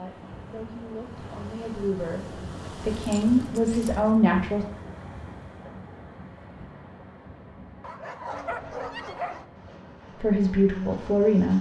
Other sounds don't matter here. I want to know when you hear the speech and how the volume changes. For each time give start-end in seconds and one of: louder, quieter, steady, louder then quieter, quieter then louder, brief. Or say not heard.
0.0-4.7 louder
10.2-11.5 brief.